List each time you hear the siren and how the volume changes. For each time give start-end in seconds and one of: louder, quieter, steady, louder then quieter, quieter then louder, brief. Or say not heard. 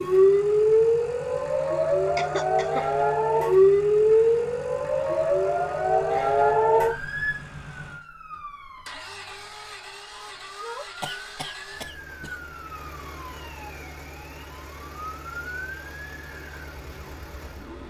0.0-17.8 quieter.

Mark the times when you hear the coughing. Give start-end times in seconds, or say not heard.
2.1-2.9, 11.0-12.4.